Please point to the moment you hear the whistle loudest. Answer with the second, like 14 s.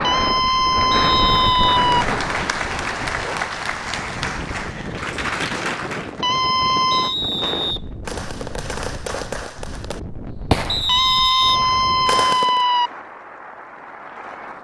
11 s.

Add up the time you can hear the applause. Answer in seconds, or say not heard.
8 s.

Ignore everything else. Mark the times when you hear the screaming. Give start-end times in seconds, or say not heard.
0.0-2.0, 6.2-7.2, 10.8-12.9.